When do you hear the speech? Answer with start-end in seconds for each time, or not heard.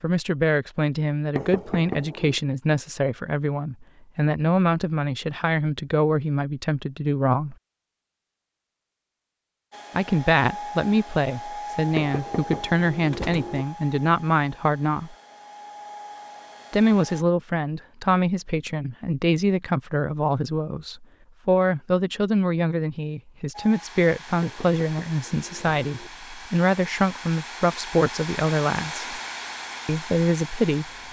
0.0-7.5, 9.9-15.2, 16.7-29.2, 29.9-31.0.